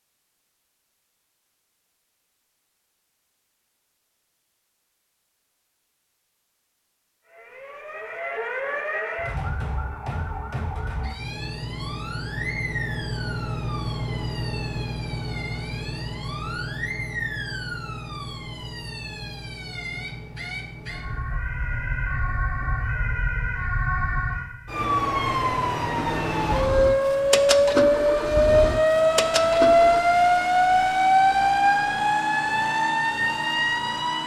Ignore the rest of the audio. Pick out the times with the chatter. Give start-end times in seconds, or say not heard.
not heard.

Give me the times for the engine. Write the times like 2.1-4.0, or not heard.
11.2-21.2, 25.9-30.0.